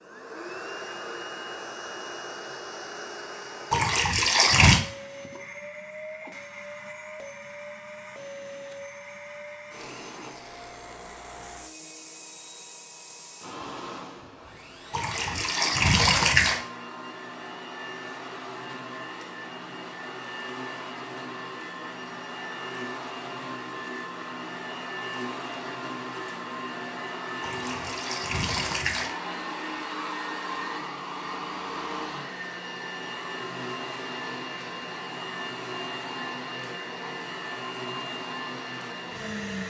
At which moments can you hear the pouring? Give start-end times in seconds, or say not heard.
3.7-4.8, 14.9-16.6, 27.4-29.1.